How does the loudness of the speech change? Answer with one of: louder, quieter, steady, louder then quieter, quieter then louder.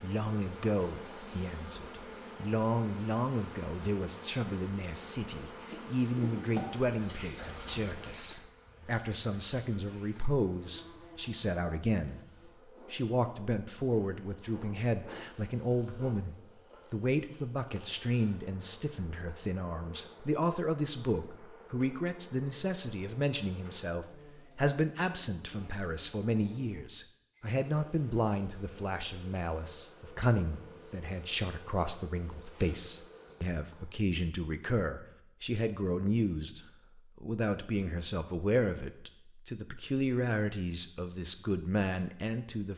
steady.